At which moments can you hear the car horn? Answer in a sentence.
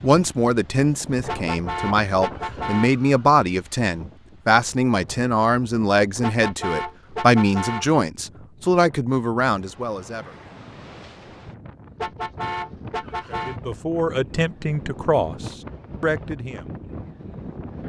You can hear the car horn from 1.2 to 3.2 s, from 6.2 to 8.0 s and from 11.9 to 13.6 s.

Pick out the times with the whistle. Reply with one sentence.
The whistle can't be heard in this clip.